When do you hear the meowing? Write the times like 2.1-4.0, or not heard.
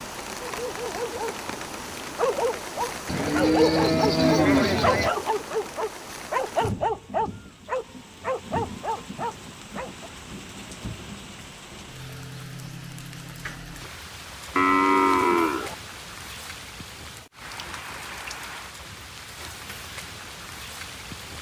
not heard.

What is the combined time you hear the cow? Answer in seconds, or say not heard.
3 s.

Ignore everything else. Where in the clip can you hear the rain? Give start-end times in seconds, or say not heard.
0.0-21.3.